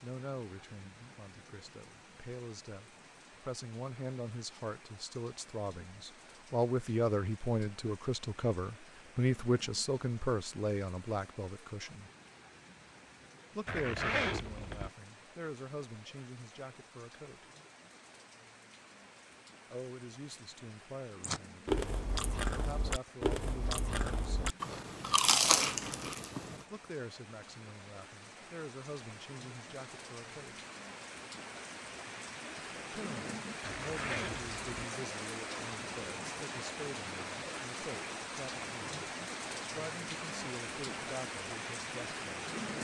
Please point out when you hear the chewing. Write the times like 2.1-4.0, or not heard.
21.2-26.6.